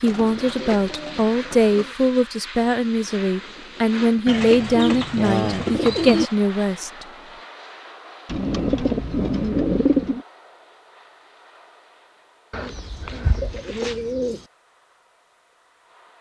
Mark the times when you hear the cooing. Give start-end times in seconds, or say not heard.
0.1-1.9, 4.2-6.3, 8.2-10.2, 12.5-14.4.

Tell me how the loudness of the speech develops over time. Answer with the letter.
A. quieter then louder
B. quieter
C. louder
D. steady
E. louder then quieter
D.